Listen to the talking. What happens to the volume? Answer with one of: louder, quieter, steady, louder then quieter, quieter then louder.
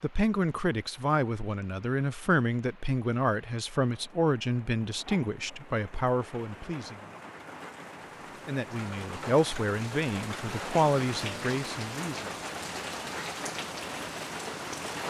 steady.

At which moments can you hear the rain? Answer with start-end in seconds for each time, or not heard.
0.0-15.0.